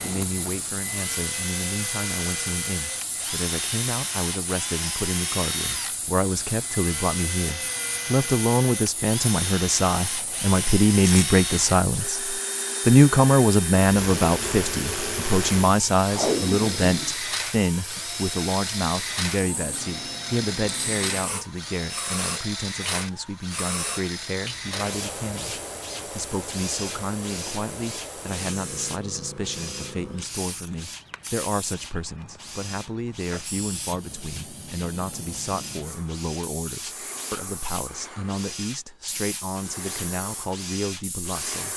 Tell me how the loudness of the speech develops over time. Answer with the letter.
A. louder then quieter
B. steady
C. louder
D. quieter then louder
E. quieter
A.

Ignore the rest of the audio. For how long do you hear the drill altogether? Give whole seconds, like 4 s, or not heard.
42 s.